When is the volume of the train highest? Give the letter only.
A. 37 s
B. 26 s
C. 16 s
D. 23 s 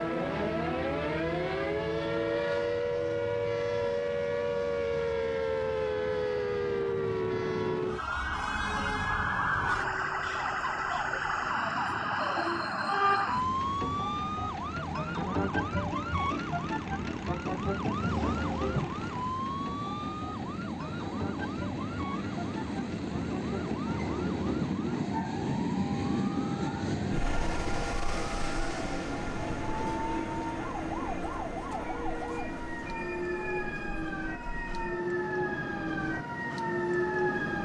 B.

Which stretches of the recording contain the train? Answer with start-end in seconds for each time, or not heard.
0.0-37.6.